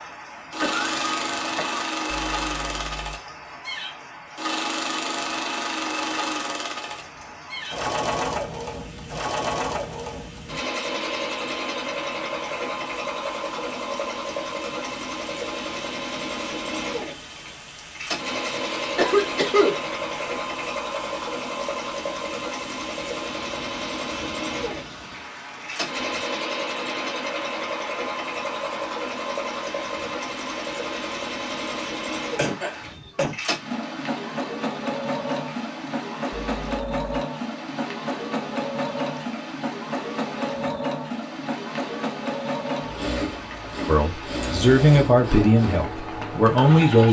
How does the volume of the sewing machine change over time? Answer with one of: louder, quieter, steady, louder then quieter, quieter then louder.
steady.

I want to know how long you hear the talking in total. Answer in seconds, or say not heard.
3 s.